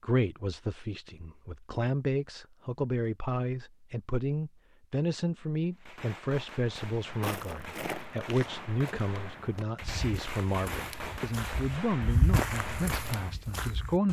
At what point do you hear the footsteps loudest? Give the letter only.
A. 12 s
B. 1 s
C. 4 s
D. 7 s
A.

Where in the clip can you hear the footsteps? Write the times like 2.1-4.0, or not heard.
6.8-14.0.